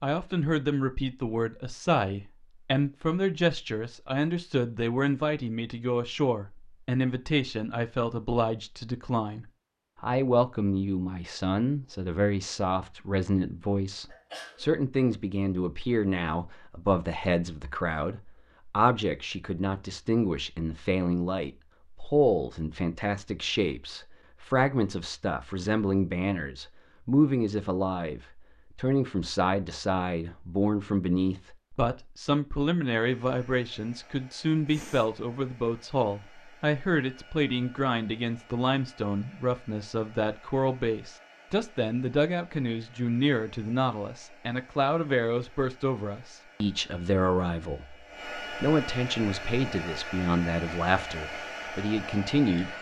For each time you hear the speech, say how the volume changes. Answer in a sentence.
The speech can be heard from 0.0 to 52.7 s, at a steady volume.